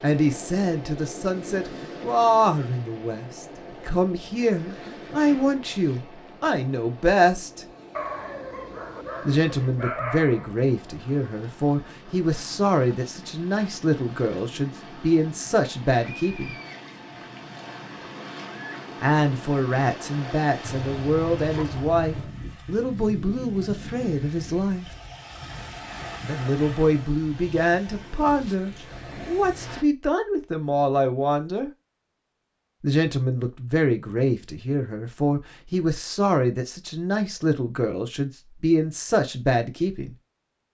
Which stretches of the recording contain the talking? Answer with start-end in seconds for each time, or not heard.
0.0-7.7, 9.2-16.6, 19.0-24.9, 26.2-31.7, 32.8-40.1.